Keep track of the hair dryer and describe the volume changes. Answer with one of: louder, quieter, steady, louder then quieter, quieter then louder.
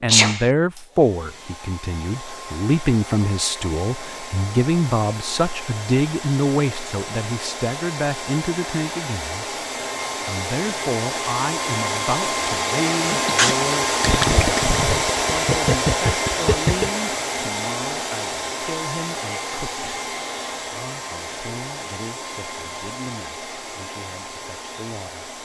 louder then quieter.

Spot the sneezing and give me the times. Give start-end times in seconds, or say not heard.
0.1-0.5, 13.1-13.6.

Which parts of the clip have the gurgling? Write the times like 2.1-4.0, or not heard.
14.0-16.9.